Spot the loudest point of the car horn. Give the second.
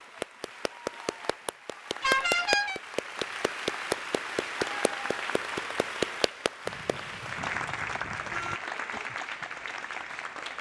2 s.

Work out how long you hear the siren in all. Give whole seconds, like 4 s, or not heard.
not heard.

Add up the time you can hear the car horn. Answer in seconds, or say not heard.
3 s.